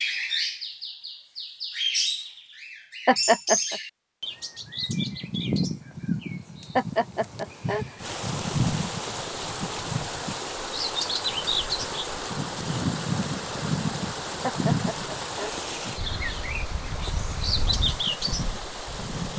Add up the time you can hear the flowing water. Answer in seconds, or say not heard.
11 s.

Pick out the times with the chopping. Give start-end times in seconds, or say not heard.
not heard.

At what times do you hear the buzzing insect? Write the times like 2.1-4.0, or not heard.
not heard.